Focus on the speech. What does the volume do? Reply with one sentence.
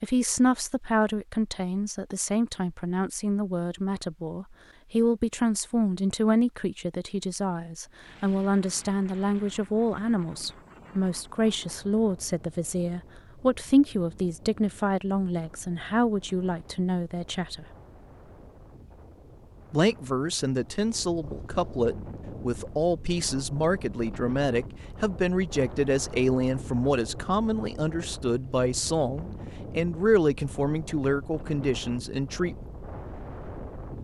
The loudness of the speech stays about the same.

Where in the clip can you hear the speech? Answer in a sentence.
You can hear the speech from 0.0 to 17.6 s and from 19.7 to 32.6 s.